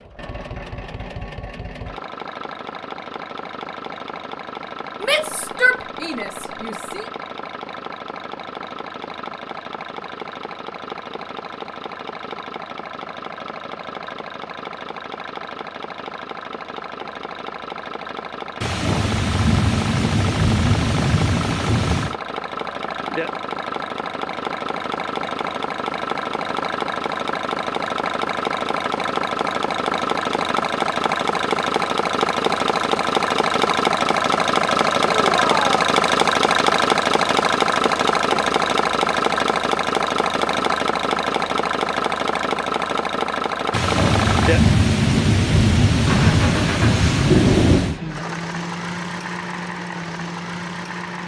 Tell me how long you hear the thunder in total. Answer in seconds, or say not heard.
8 s.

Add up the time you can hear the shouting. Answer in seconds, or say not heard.
3 s.